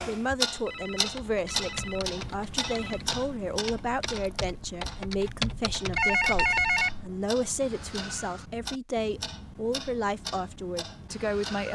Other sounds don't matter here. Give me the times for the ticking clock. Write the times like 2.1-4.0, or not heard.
0.0-11.7.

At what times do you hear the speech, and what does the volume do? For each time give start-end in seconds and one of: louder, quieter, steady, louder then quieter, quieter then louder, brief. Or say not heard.
0.1-11.7 steady.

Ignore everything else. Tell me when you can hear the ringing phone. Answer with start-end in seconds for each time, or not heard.
0.7-3.0, 6.0-7.1.